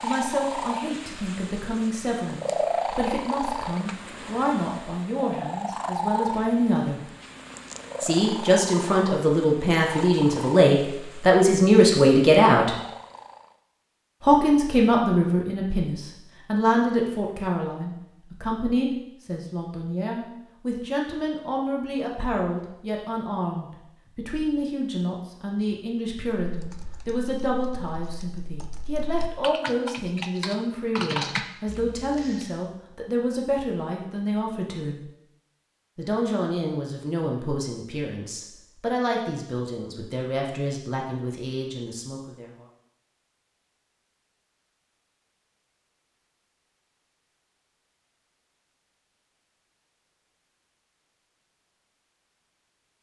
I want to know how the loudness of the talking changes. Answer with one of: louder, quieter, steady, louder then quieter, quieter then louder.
louder then quieter.